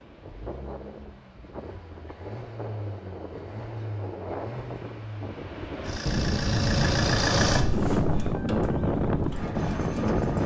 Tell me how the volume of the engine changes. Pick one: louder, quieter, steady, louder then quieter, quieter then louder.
louder then quieter.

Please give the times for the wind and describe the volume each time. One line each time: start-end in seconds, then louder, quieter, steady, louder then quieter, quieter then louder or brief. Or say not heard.
0.0-10.4 louder.